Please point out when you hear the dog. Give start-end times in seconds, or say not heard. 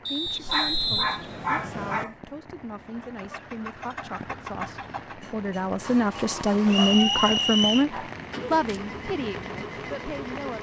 0.2-2.1, 6.8-8.8.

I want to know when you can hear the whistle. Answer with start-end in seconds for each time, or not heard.
0.1-2.0, 6.7-7.8.